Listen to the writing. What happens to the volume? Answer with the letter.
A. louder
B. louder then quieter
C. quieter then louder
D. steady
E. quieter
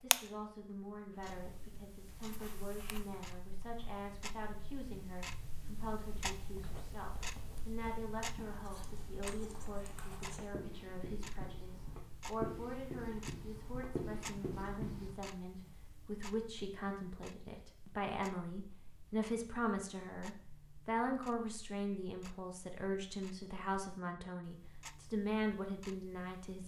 A.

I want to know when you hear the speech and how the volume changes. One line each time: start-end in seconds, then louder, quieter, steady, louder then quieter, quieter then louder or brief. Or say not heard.
0.0-26.6 louder.